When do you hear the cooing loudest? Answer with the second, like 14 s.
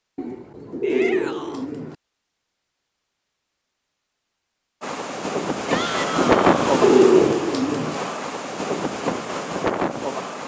7 s.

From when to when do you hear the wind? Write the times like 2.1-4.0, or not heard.
4.8-10.4.